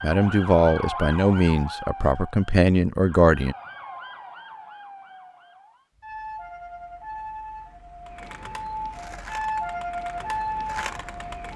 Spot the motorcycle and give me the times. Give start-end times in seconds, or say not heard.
not heard.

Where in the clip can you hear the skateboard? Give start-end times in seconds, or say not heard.
8.1-11.5.